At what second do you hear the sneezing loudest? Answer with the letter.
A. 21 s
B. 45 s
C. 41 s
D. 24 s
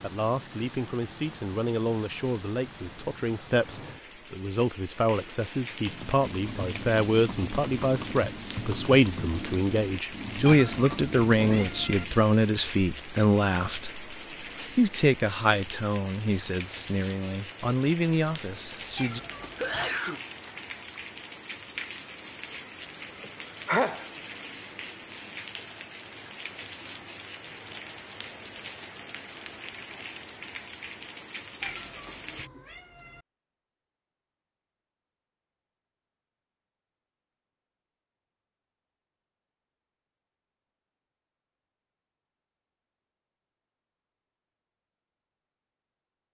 D.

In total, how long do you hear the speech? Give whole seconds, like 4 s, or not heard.
19 s.